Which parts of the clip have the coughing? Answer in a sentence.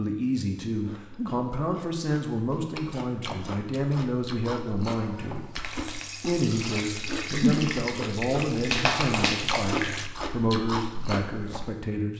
The coughing can't be heard in this clip.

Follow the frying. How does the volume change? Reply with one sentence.
The loudness of the frying goes up.